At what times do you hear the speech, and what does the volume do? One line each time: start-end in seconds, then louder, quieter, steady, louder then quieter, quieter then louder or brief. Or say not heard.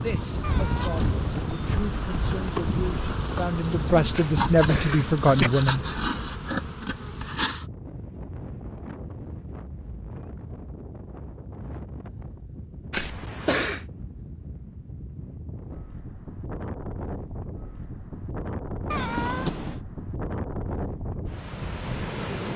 0.0-5.8 louder.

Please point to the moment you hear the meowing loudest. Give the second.
19 s.